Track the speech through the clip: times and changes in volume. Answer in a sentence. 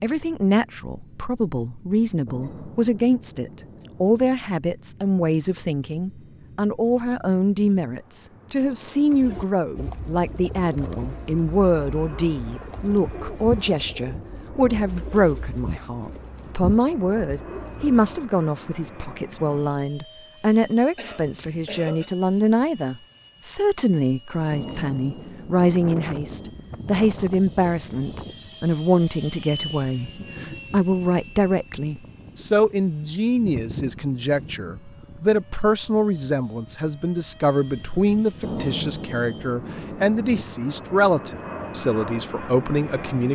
The speech can be heard from 0.0 to 43.2 s, at a steady volume.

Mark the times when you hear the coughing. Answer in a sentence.
The coughing can be heard from 20.9 to 22.1 s.